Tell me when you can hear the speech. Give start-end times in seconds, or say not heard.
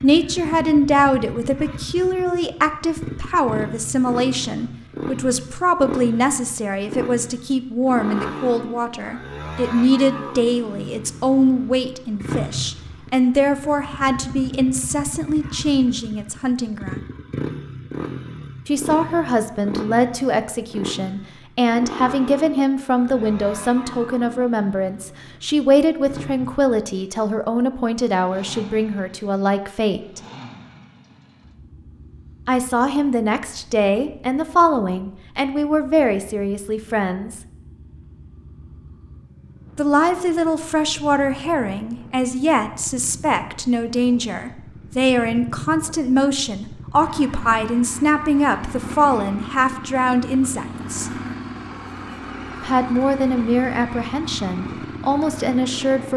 0.0-17.0, 18.6-30.2, 32.5-37.4, 39.8-51.1, 52.6-56.1.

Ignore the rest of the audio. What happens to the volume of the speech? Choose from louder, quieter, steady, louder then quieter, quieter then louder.
steady.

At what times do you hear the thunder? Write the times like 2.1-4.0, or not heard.
not heard.